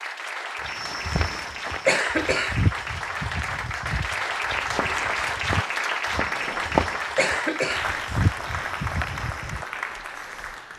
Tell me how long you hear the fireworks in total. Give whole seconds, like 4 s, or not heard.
2 s.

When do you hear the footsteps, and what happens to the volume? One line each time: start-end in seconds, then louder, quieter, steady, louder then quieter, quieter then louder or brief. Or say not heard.
0.6-9.7 quieter then louder.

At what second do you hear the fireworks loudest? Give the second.
7 s.